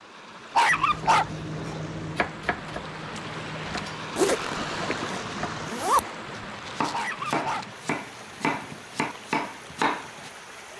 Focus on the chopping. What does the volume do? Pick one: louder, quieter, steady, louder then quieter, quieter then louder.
quieter then louder.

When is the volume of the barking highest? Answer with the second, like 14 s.
1 s.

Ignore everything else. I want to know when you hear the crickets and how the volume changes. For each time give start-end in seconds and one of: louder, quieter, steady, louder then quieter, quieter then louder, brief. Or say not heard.
not heard.